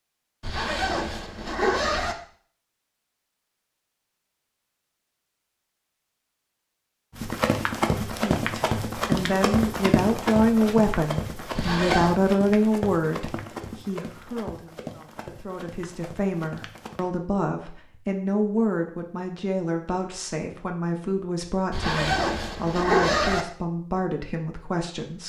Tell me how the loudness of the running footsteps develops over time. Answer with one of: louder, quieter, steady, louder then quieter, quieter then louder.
quieter.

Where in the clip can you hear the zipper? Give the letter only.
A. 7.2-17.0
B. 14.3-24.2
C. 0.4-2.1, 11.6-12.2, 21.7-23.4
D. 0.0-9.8
C.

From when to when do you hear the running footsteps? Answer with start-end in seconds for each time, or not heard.
7.2-17.0.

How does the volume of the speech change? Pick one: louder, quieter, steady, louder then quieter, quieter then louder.
quieter.